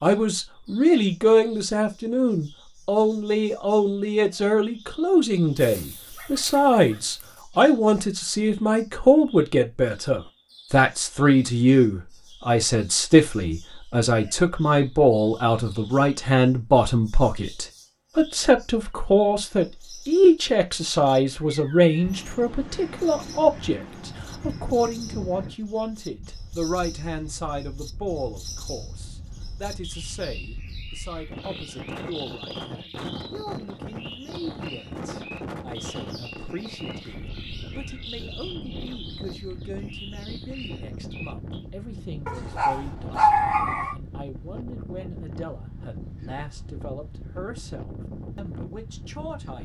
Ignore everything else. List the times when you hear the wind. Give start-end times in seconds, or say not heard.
22.0-49.6.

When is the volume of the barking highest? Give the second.
43 s.